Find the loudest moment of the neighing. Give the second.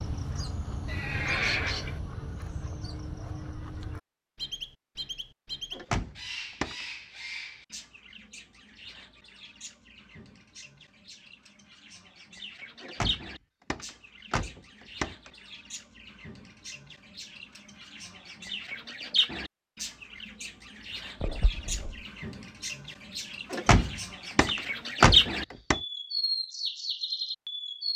1 s.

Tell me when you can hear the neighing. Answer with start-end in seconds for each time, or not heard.
0.8-2.0, 21.2-22.0.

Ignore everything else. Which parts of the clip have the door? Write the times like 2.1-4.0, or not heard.
5.7-6.8, 12.8-15.3, 23.5-25.8.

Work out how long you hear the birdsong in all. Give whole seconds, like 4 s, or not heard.
28 s.